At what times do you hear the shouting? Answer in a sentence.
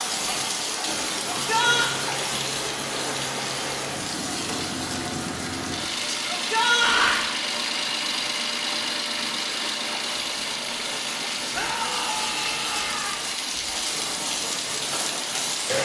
You can hear the shouting from 1.3 to 1.9 s, from 6.2 to 7.2 s and from 11.5 to 13.2 s.